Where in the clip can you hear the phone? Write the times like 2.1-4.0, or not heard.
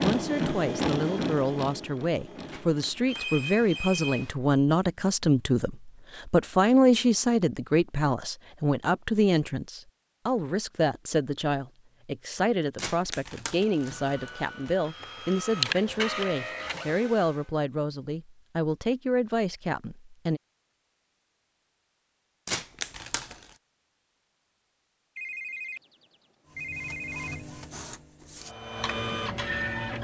3.0-4.3, 25.1-27.4.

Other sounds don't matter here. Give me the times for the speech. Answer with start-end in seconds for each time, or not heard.
0.0-20.4.